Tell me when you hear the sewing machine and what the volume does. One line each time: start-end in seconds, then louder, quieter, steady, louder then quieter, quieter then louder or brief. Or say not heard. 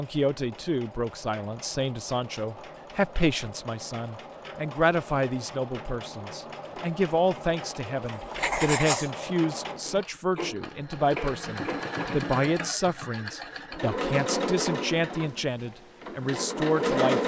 0.0-17.2 louder.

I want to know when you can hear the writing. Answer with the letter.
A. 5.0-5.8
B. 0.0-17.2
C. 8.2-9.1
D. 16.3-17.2
C.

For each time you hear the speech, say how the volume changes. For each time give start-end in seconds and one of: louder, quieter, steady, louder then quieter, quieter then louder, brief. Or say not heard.
0.0-17.2 steady.